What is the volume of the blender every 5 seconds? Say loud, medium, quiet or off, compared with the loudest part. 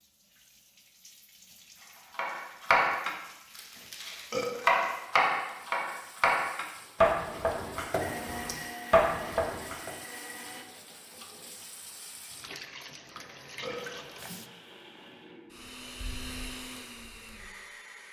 off, loud, medium, loud.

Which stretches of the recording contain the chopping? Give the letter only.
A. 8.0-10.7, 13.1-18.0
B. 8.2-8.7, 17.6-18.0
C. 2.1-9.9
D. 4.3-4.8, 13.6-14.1
C.